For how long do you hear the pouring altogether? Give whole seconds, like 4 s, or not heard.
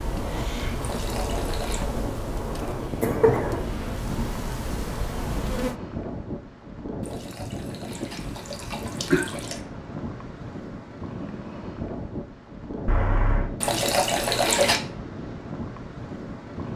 5 s.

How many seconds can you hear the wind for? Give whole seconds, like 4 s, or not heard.
17 s.